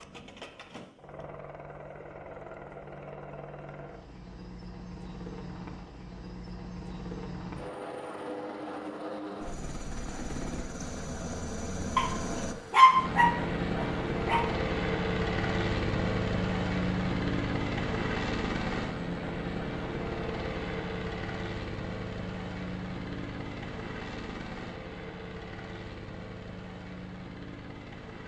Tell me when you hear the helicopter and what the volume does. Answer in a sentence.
You can hear the helicopter from 0.0 to 28.2 s, getting louder then quieter.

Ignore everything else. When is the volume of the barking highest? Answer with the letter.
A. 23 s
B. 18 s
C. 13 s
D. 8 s
C.